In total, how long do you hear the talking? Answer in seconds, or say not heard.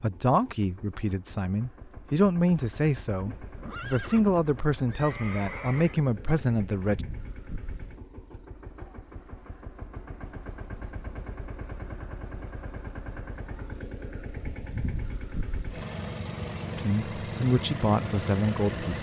9 s.